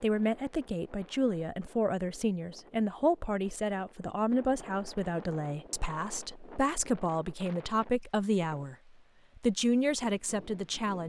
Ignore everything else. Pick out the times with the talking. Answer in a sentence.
You can hear the talking from 0.0 to 8.8 s and from 9.3 to 11.0 s.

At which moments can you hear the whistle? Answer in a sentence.
The whistle can't be heard in this clip.